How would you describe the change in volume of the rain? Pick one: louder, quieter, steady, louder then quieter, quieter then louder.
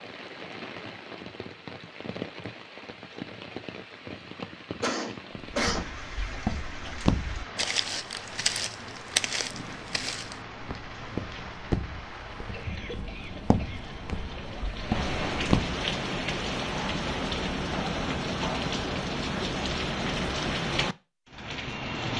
louder.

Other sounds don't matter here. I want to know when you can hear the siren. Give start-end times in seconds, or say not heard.
not heard.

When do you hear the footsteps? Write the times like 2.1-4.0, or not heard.
5.5-15.8.